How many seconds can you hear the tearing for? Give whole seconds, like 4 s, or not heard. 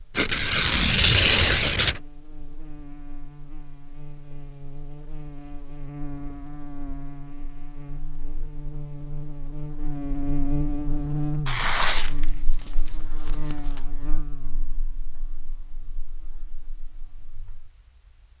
4 s.